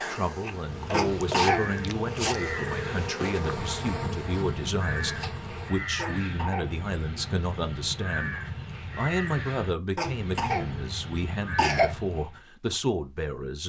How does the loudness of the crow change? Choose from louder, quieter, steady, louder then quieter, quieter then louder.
steady.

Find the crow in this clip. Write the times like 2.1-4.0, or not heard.
0.5-12.4.